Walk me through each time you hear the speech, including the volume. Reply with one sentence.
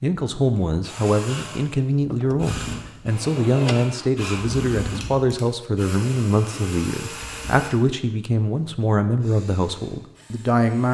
The speech can be heard from 0.0 to 10.9 s, at a steady volume.